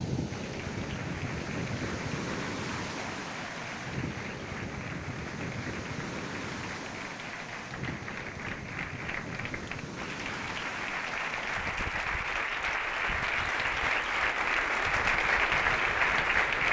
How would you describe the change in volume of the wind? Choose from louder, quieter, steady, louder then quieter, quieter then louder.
quieter.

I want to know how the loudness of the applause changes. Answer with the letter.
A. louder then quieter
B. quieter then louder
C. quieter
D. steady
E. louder
E.